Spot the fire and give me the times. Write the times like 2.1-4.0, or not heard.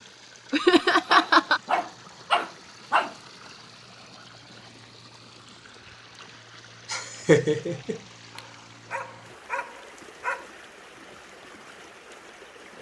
not heard.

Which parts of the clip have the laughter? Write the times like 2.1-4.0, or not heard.
0.5-1.6, 6.9-8.0.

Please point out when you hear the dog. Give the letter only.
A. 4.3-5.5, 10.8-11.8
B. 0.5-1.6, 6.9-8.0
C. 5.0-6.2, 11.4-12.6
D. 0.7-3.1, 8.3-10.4
D.